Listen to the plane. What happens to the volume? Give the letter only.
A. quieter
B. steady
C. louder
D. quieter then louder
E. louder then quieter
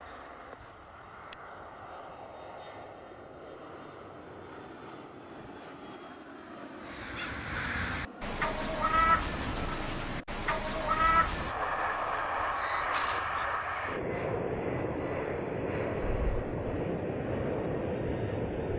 C.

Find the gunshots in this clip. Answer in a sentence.
You can hear the gunshots from 12.9 to 13.4 s.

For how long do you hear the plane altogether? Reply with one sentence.
You can hear the plane for 19 seconds altogether.